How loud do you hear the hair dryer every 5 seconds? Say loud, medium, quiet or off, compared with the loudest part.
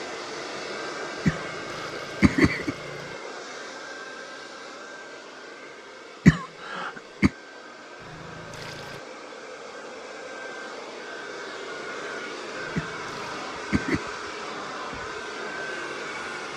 loud, medium, loud, loud.